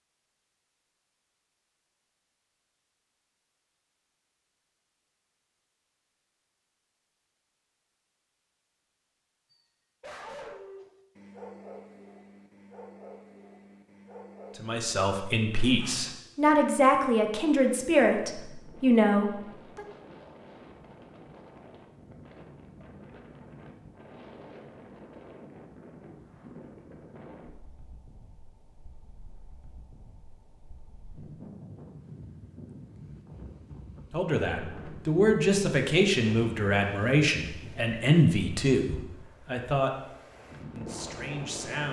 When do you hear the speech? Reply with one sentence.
You can hear the speech from 14.6 to 19.9 s, from 34.1 to 40.1 s and from 40.8 to 41.8 s.